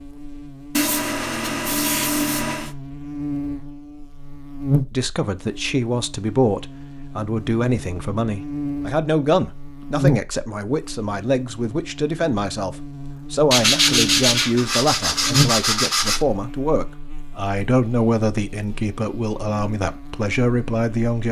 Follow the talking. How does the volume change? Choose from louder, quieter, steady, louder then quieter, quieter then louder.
steady.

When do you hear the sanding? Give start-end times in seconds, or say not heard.
0.8-2.8, 13.5-16.2.